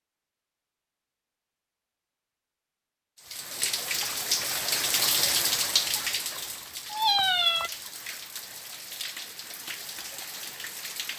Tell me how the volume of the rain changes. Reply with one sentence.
The loudness of the rain goes down.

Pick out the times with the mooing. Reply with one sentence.
You can't hear the mooing here.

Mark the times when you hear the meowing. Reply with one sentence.
You can hear the meowing from 6.9 to 7.7 s.